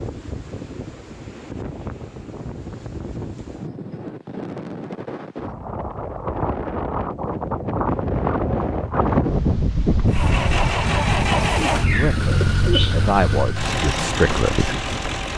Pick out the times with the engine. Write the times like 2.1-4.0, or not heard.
10.1-15.3.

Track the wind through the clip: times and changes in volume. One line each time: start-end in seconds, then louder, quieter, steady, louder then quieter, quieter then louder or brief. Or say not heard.
0.0-15.3 louder then quieter.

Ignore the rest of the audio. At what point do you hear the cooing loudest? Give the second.
13 s.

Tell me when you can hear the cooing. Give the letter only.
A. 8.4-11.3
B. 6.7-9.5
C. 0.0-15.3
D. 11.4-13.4
D.